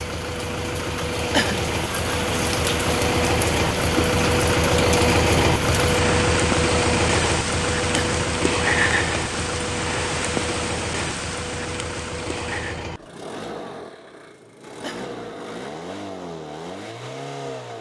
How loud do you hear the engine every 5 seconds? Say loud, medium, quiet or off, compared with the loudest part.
loud, loud, medium, medium.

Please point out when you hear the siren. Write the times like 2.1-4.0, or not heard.
not heard.